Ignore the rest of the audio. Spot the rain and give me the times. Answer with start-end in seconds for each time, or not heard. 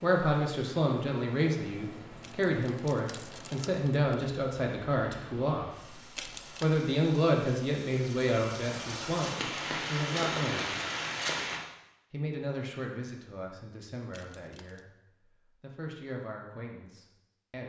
0.0-11.6.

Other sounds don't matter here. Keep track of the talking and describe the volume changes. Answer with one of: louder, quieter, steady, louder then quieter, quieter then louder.
quieter.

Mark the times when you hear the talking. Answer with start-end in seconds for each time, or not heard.
0.0-6.0, 6.6-10.8, 12.1-17.6.